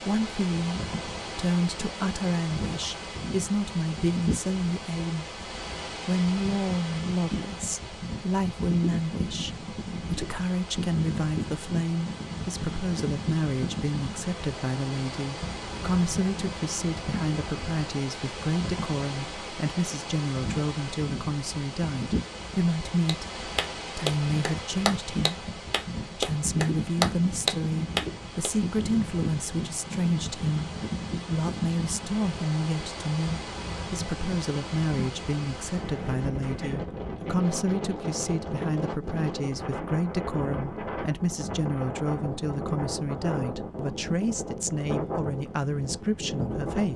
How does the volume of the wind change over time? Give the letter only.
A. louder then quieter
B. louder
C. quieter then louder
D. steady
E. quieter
D.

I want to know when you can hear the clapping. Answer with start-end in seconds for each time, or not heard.
23.1-28.5.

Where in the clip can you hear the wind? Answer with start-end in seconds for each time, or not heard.
0.0-46.9.